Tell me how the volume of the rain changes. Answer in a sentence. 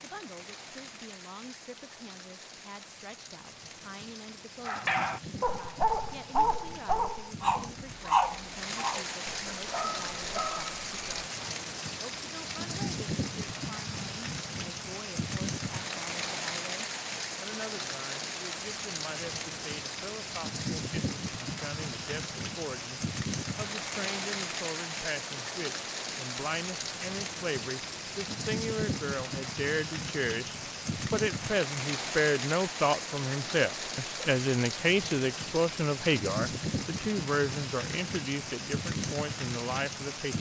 The volume of the rain goes up.